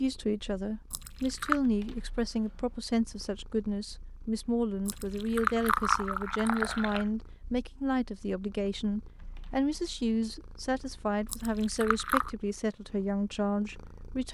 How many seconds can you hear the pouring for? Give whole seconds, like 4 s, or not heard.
4 s.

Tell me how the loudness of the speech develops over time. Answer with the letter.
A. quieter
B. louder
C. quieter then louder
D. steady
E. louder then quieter
D.